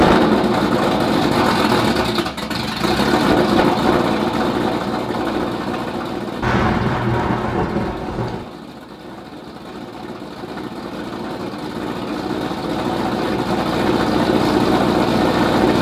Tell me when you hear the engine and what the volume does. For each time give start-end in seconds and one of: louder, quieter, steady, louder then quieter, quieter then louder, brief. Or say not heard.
0.0-15.7 quieter then louder.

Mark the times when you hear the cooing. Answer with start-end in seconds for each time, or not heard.
not heard.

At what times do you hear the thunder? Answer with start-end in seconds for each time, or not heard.
6.4-8.4.